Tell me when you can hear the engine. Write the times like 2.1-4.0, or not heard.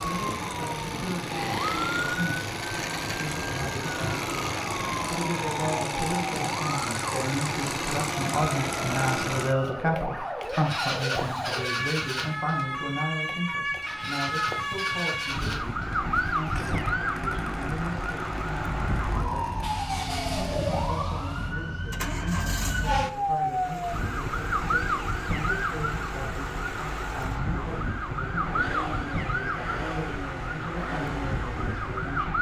0.0-32.3.